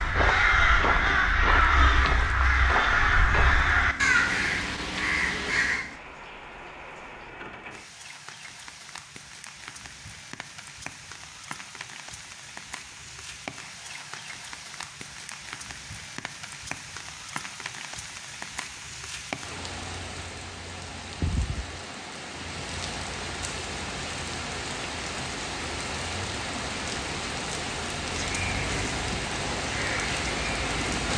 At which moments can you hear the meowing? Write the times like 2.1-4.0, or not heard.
not heard.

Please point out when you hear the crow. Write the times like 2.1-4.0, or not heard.
0.0-5.8, 28.2-31.1.